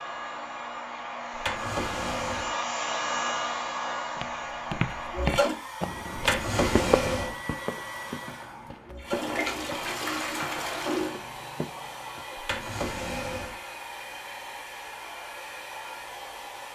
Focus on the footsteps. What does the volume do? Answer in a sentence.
The volume of the footsteps goes down.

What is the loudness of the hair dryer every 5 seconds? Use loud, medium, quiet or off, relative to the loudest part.
loud, medium, medium, medium.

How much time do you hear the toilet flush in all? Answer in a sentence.
The toilet flush can be heard for 3 seconds in total.